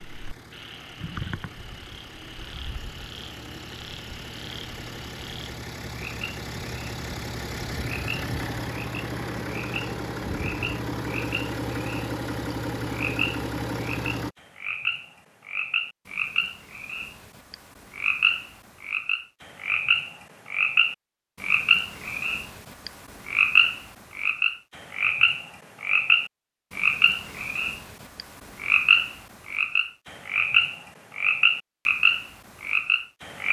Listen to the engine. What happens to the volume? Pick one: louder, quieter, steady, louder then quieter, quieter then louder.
louder.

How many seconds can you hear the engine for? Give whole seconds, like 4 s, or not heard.
14 s.